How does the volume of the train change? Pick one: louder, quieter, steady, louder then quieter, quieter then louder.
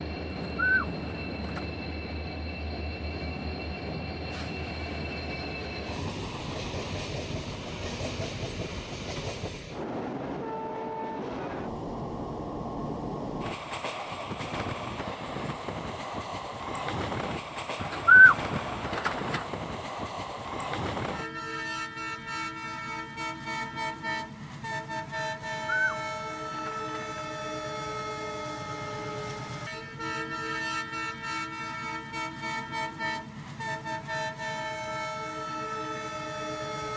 steady.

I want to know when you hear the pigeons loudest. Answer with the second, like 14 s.
18 s.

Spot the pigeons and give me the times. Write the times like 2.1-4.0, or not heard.
0.3-1.6, 17.8-19.4, 25.4-27.2.